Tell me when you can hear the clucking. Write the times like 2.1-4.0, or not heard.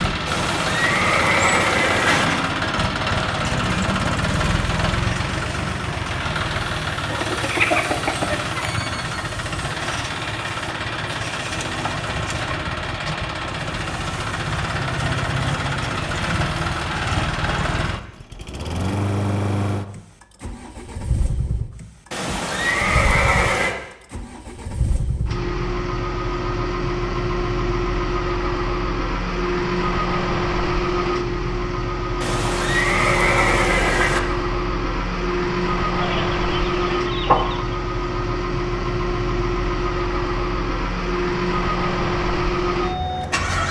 7.0-8.8, 36.0-37.8.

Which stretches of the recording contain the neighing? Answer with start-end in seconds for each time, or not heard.
0.2-2.3, 22.1-23.8, 32.2-34.2.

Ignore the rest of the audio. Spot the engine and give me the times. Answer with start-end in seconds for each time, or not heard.
0.0-43.6.